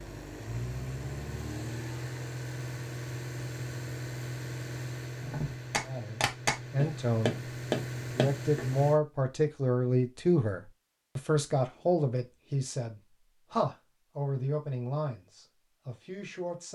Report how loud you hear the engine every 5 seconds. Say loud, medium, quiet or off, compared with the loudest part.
loud, loud, off, off.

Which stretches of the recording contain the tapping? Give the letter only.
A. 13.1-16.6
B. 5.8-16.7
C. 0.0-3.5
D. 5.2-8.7
D.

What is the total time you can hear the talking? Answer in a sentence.
The talking can be heard for 11 seconds in total.